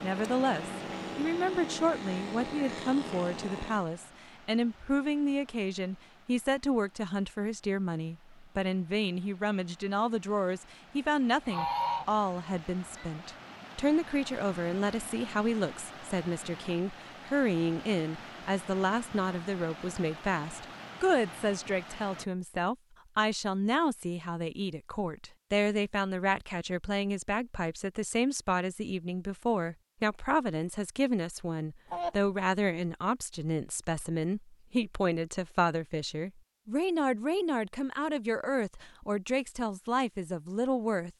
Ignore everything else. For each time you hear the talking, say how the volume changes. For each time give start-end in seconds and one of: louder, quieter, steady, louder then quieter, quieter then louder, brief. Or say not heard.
0.0-41.1 steady.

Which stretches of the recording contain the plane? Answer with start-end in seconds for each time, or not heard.
0.0-3.9.